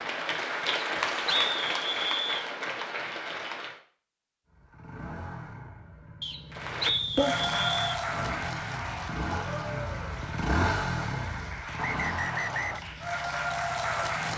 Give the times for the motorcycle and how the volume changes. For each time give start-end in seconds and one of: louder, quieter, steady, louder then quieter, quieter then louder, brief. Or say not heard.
4.5-14.3 louder then quieter.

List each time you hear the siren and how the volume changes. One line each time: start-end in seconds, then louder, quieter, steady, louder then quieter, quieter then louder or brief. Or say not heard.
not heard.